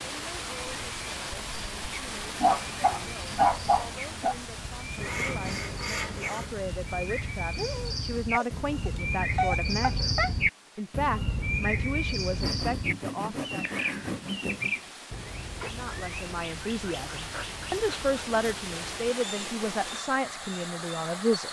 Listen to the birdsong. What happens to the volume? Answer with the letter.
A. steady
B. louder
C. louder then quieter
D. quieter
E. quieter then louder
C.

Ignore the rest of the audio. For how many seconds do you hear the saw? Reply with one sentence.
You can hear the saw for 4 seconds altogether.